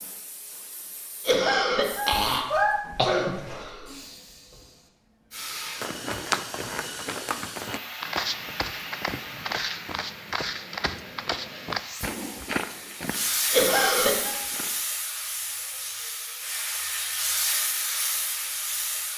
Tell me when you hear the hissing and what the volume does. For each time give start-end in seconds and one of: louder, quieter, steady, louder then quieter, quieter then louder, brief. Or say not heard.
0.0-19.1 louder.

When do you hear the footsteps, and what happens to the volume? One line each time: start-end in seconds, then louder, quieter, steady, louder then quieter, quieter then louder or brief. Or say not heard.
5.8-14.8 quieter.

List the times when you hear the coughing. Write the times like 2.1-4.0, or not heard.
1.2-3.9, 13.5-14.4.